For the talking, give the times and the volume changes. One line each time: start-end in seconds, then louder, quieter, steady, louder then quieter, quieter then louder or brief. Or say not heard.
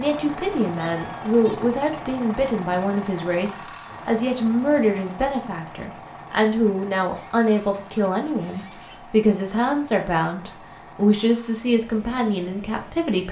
0.0-13.2 steady.